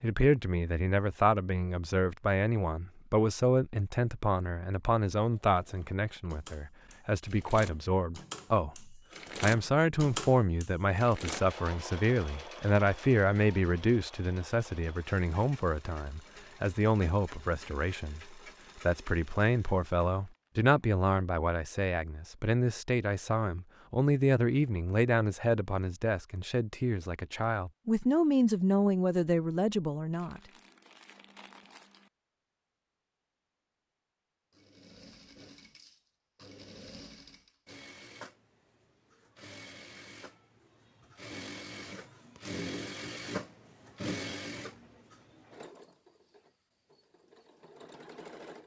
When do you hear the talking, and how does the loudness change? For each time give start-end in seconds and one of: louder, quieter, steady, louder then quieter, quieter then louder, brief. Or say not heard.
0.0-30.4 steady.